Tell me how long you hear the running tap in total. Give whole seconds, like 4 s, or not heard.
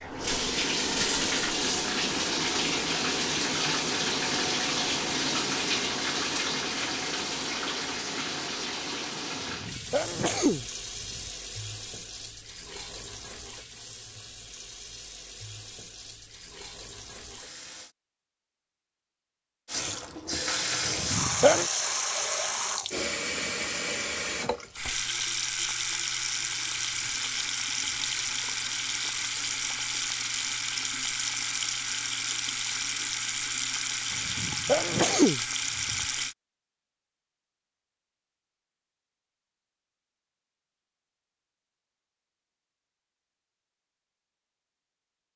35 s.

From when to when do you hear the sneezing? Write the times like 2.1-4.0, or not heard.
9.3-11.3, 20.9-21.6, 34.1-36.0.